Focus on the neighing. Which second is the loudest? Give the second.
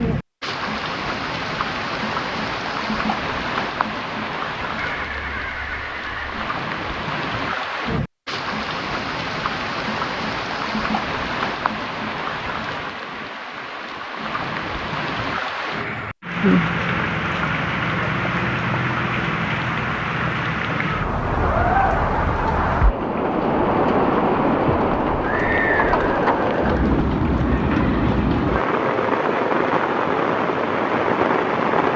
26 s.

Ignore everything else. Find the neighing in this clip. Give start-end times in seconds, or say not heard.
4.8-6.5, 25.2-27.1.